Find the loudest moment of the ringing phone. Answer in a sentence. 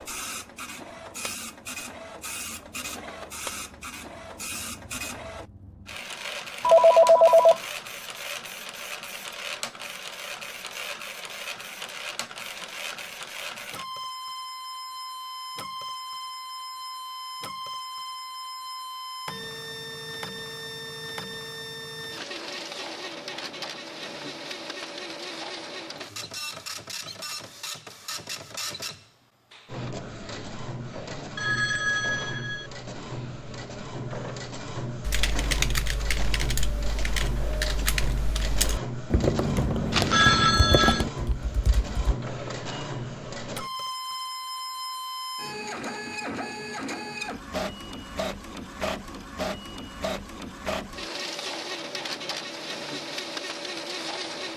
The loudest moment of the ringing phone is at 7 seconds.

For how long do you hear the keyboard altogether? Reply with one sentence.
The keyboard can be heard for 7 seconds in total.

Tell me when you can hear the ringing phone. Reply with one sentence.
You can hear the ringing phone from 6.6 to 7.6 s, from 31.4 to 32.7 s and from 39.9 to 41.0 s.